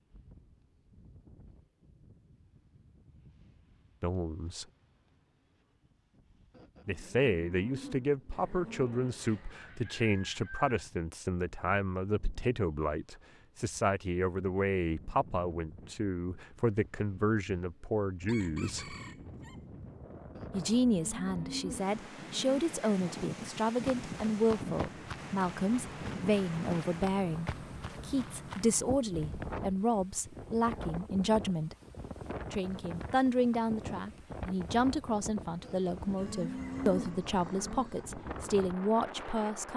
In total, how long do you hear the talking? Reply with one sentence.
You can hear the talking for 31 seconds altogether.